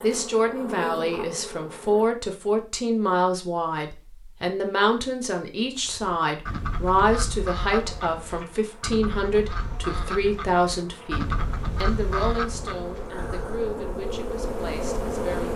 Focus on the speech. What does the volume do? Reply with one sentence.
The loudness of the speech goes down.